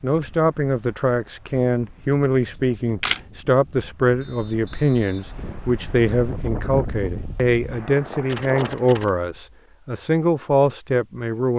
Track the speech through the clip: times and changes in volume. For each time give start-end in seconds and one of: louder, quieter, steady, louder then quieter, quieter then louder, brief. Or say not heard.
0.0-11.5 steady.